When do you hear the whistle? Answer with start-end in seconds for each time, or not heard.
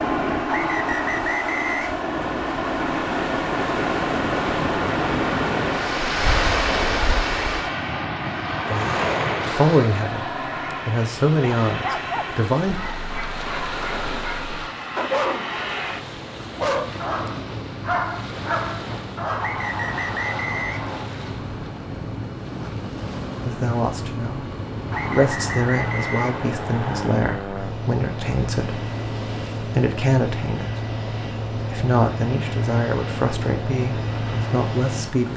0.5-2.0, 19.4-21.1, 24.9-26.5.